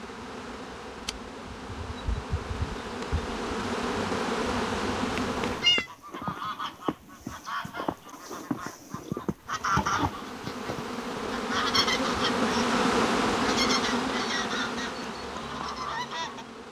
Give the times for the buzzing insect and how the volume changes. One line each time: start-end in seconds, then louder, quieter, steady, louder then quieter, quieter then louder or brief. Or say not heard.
0.0-5.8 louder
9.3-16.6 louder then quieter.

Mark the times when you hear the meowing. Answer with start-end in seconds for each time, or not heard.
5.0-5.8.